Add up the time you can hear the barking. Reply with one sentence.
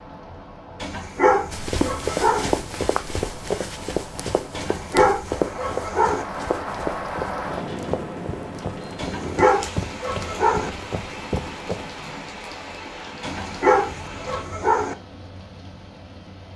You can hear the barking for 7 seconds altogether.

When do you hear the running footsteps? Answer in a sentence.
The running footsteps can be heard from 1.5 to 12.0 s.